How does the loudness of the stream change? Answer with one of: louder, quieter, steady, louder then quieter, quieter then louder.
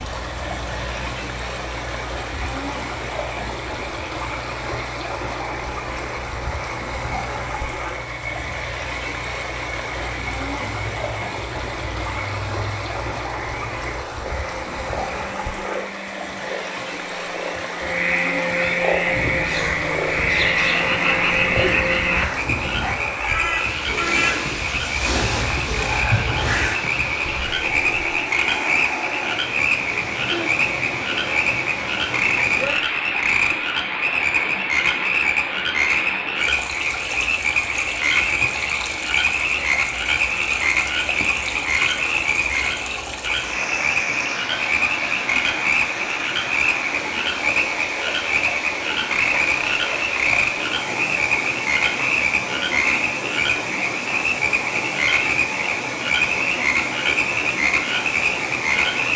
steady.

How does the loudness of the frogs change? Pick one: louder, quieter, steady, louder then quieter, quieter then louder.
louder.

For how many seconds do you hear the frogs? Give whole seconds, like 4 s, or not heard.
59 s.